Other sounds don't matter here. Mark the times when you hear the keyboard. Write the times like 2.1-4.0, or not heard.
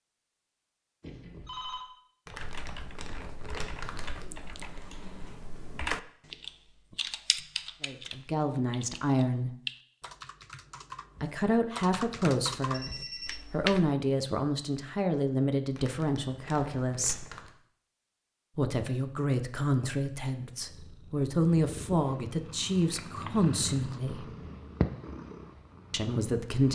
2.4-13.9.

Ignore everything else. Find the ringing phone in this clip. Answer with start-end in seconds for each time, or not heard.
1.0-1.9, 12.7-13.4, 22.8-23.3.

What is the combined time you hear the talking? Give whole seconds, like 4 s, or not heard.
14 s.